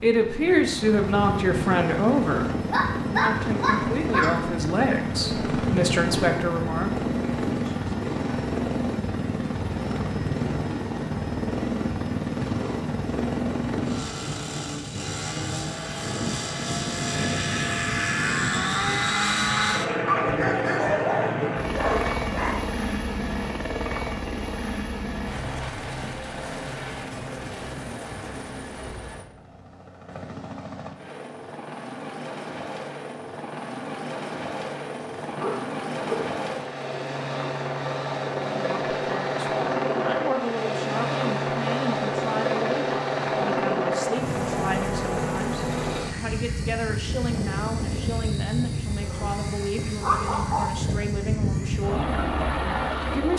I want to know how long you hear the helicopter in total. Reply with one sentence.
You can hear the helicopter for 53 seconds altogether.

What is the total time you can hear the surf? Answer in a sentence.
The surf can't be heard in this clip.